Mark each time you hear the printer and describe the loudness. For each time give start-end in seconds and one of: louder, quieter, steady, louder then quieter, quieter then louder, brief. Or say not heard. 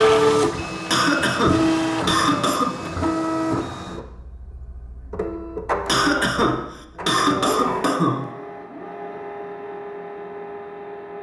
0.0-11.1 quieter.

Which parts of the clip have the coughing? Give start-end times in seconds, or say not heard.
0.9-2.9, 5.8-8.3.